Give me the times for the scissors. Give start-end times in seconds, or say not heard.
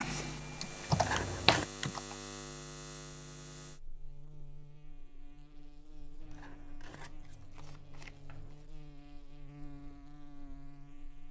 0.9-1.7, 6.2-8.7.